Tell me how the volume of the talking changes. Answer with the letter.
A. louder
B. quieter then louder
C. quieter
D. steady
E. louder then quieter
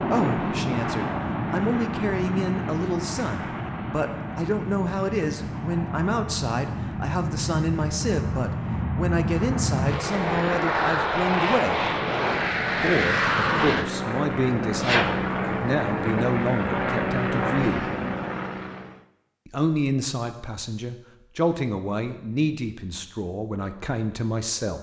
D.